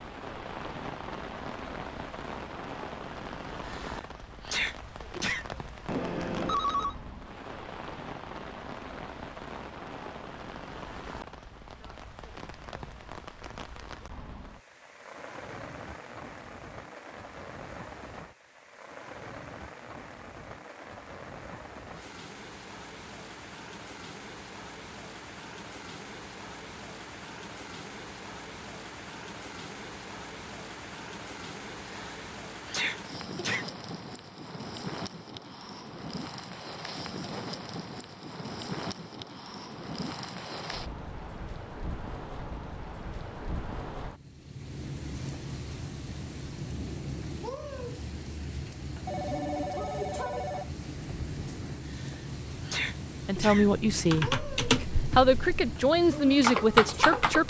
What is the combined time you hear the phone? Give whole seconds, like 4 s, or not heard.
3 s.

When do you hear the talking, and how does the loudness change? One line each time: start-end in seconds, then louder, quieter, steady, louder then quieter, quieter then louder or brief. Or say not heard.
53.2-57.4 quieter then louder.